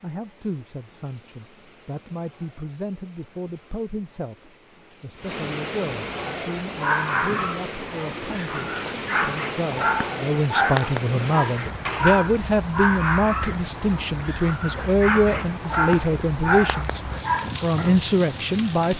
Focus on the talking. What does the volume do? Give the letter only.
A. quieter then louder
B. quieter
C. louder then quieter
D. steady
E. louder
E.